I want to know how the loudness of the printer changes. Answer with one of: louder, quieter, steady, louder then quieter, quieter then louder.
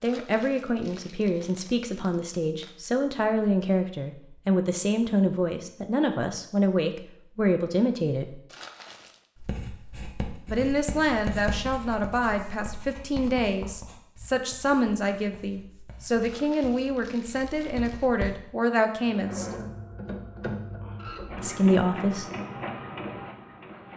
steady.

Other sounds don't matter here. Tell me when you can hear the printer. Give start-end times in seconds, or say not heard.
19.1-23.9.